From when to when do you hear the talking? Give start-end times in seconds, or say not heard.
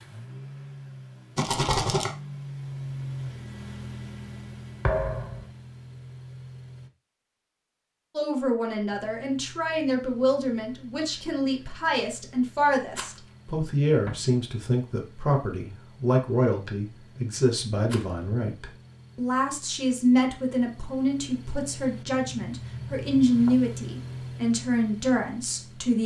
8.2-26.0.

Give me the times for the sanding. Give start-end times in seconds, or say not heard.
not heard.